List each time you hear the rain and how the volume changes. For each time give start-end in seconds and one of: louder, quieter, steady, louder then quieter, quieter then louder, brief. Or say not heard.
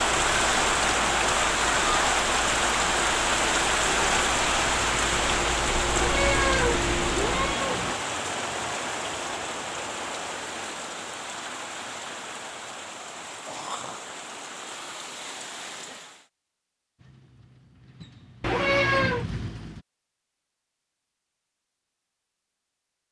0.0-16.2 quieter.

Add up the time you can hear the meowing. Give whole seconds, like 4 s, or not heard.
3 s.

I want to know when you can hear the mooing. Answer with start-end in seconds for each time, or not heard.
not heard.